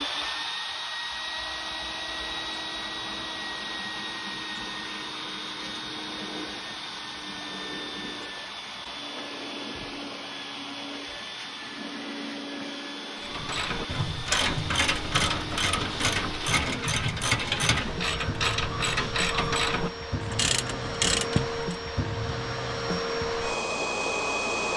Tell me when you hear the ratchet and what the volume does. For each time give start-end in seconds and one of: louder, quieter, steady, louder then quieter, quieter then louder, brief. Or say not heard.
13.2-21.8 steady.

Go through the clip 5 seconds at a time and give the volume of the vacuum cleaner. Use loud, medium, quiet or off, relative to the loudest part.
loud, medium, medium, medium, loud.